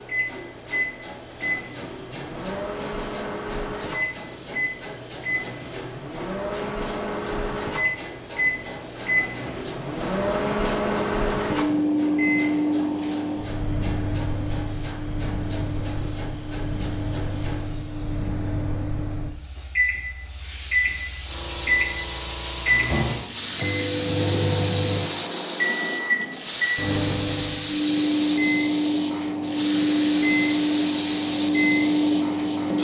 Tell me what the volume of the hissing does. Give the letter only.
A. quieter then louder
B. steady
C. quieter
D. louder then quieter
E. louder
E.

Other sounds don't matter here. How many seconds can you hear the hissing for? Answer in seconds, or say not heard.
33 s.